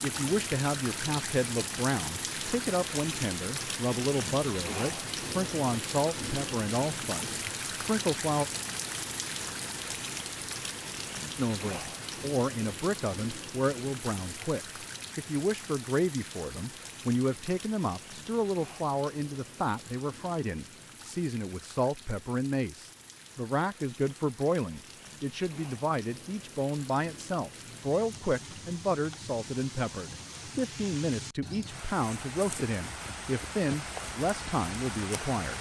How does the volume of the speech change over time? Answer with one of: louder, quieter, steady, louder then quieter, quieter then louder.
steady.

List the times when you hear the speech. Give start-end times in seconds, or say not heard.
0.0-8.4, 11.3-35.5.